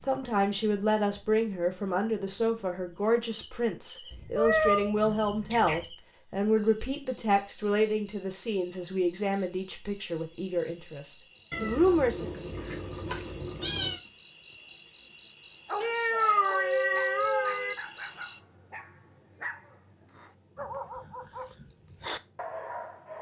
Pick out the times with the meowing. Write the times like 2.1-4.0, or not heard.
4.1-5.8, 11.5-14.0, 15.8-17.8.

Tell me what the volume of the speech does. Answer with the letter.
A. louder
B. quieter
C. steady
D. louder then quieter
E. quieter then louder
C.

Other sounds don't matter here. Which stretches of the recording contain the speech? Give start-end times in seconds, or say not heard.
0.0-12.3.